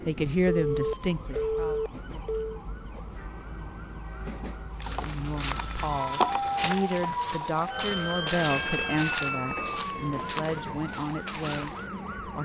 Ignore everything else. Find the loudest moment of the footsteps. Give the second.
6 s.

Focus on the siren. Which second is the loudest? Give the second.
7 s.